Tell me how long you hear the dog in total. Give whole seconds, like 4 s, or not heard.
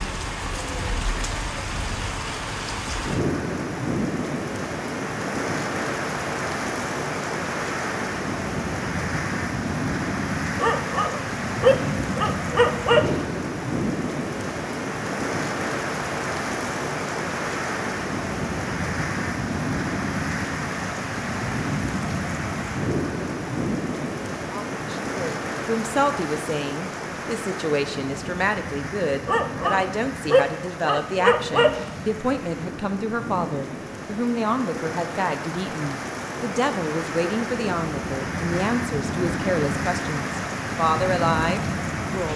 5 s.